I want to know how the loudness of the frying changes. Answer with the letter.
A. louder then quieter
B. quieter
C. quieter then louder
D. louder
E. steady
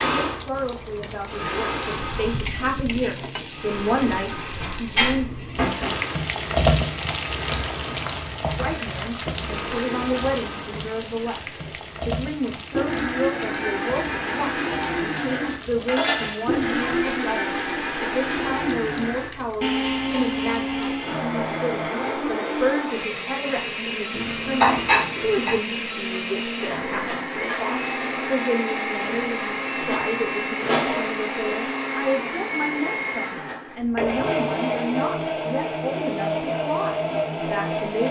A.